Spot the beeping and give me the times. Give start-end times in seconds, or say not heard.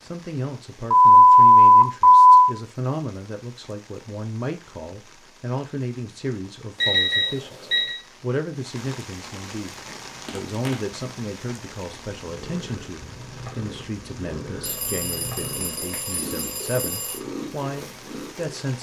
0.9-2.5, 6.8-8.0, 14.6-17.2.